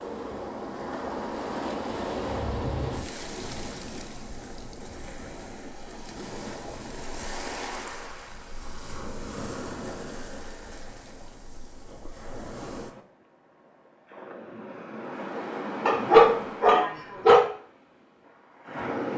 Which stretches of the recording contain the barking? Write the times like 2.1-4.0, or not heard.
15.8-17.4.